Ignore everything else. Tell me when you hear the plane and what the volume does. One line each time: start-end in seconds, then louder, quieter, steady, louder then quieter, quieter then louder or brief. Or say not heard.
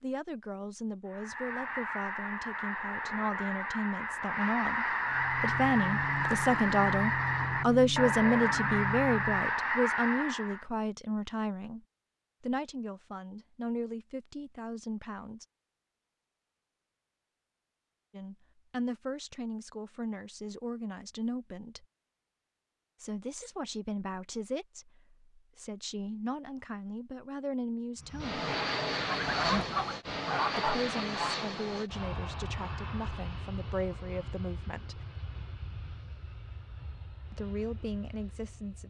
5.0-9.7 steady
28.0-38.8 quieter.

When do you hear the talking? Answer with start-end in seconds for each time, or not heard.
0.0-11.8, 12.4-15.4, 18.1-21.9, 23.0-28.4, 30.6-35.0, 37.3-38.8.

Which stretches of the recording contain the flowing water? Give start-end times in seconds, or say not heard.
not heard.